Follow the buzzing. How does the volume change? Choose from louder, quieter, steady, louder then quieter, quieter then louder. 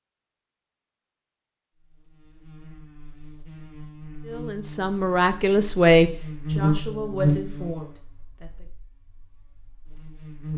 louder then quieter.